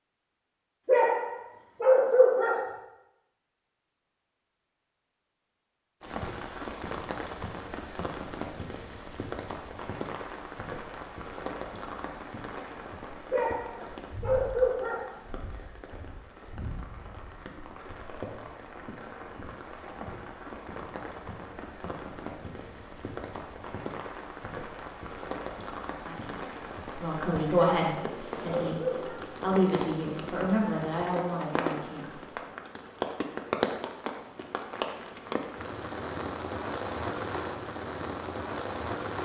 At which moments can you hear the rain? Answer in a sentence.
You can hear the rain from 6.0 to 39.2 s.